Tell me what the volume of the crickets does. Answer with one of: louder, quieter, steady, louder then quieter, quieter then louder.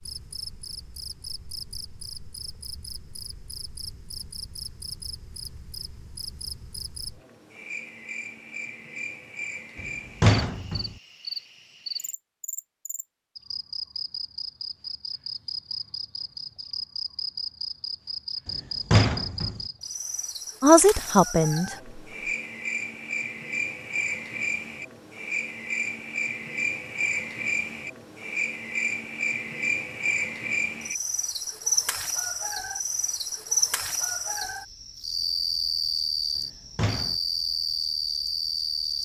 louder.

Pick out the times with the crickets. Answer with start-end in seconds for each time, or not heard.
0.0-39.0.